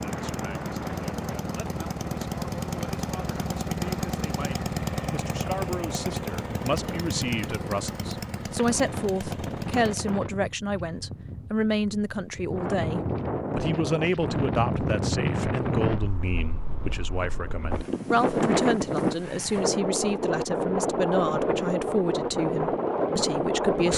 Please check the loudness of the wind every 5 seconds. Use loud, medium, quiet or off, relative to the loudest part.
medium, medium, medium, loud, loud.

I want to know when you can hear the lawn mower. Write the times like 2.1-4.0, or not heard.
0.0-10.2.